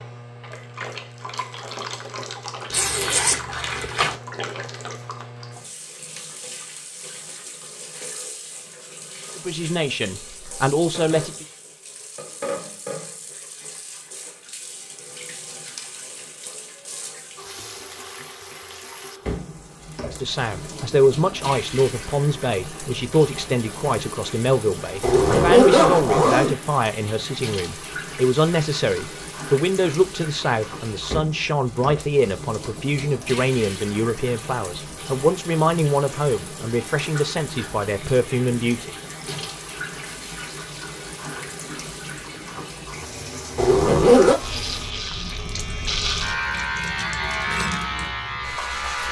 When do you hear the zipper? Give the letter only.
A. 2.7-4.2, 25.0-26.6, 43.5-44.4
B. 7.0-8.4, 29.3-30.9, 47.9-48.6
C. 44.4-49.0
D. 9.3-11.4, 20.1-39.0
A.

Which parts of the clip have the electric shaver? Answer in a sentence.
The electric shaver can be heard from 44.4 to 49.0 s.